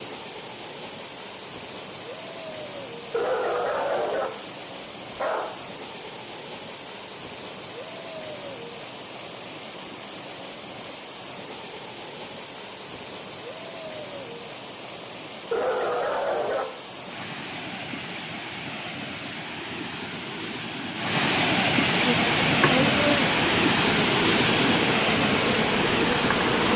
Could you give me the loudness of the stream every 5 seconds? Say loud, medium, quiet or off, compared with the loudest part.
quiet, quiet, quiet, quiet, loud, loud.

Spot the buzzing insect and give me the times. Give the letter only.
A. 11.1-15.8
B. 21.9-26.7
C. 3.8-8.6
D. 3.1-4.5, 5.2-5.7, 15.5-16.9
B.